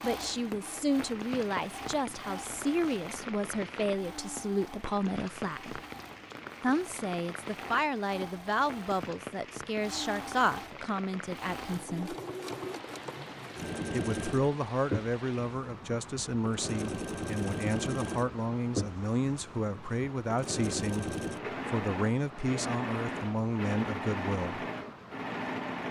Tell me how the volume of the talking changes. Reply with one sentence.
The volume of the talking stays about the same.